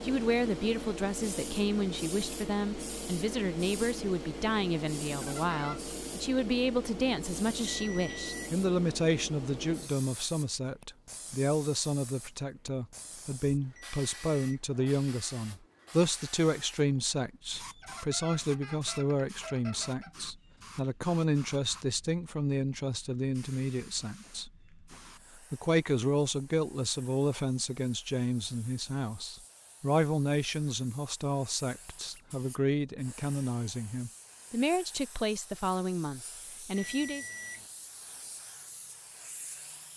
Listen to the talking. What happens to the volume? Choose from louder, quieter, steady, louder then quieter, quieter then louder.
steady.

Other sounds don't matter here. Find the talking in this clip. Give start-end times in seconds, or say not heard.
0.0-24.5, 25.5-37.2.